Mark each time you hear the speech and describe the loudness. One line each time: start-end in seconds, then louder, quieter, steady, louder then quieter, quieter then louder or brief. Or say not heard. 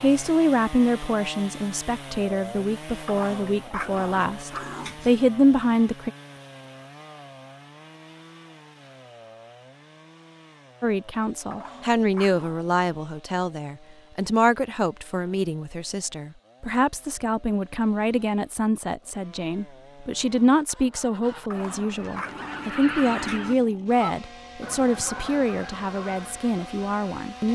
0.0-6.1 quieter then louder
10.8-27.5 steady.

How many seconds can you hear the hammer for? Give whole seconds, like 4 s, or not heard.
not heard.